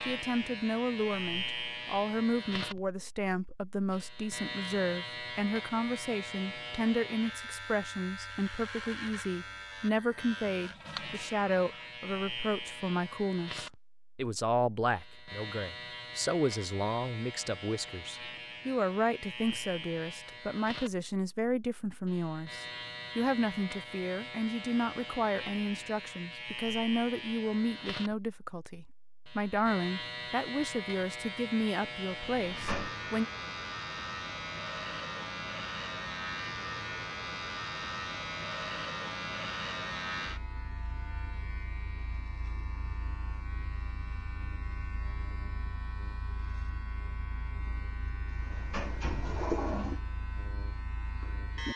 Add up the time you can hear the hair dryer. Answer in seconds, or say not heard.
not heard.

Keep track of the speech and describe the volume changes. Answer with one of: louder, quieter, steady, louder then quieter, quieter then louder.
steady.